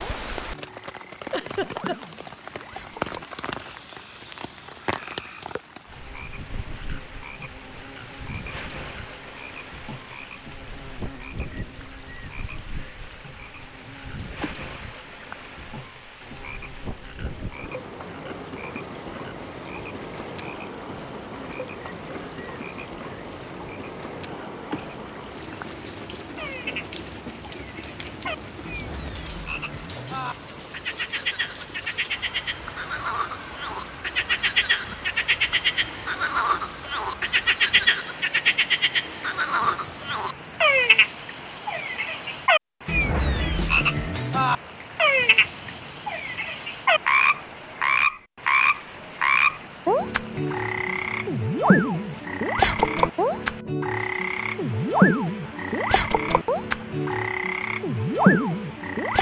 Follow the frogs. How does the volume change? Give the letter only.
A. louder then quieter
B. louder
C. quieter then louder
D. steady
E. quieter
B.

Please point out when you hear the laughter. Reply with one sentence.
The laughter can be heard from 1.3 to 2.0 s.